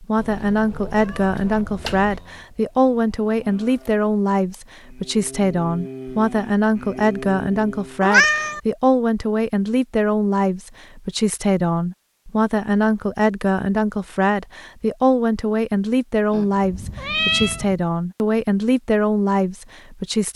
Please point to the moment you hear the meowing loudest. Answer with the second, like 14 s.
8 s.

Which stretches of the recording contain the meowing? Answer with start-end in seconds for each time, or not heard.
0.1-2.2, 8.0-8.6, 16.3-17.8.